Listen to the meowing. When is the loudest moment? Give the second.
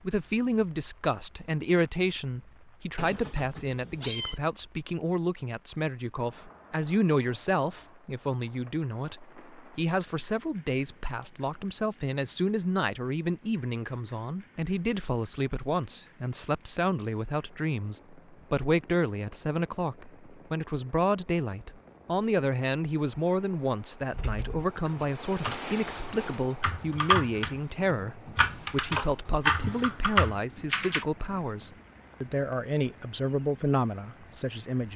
4 s.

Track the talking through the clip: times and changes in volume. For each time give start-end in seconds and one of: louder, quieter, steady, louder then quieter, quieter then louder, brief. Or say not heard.
0.1-34.9 steady.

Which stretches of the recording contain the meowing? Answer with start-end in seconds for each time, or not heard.
3.0-4.4.